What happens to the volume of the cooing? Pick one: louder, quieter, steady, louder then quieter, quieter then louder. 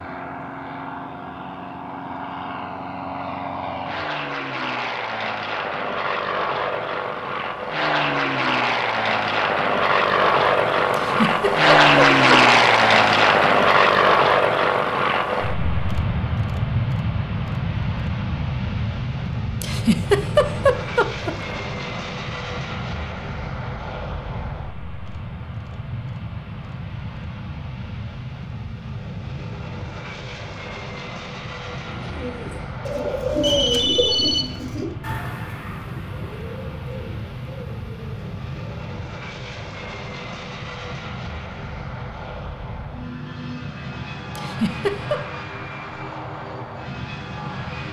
quieter.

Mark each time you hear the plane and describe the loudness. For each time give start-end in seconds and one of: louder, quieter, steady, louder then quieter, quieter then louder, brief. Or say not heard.
0.0-47.8 louder then quieter.